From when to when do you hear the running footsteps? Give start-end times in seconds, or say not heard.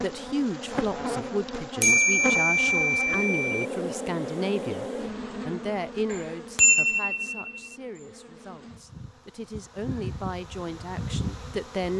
not heard.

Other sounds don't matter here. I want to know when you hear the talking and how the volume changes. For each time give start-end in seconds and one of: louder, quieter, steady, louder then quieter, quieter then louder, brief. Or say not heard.
0.0-4.8 steady
5.5-11.9 quieter then louder.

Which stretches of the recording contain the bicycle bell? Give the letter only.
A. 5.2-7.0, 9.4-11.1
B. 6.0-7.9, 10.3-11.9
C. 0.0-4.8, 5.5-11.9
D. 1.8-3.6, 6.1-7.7
D.